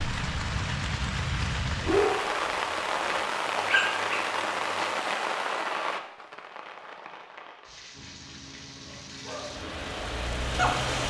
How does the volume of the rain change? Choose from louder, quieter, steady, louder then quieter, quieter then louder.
quieter then louder.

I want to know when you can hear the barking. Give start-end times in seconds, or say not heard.
1.8-4.8, 8.8-9.7, 10.4-11.0.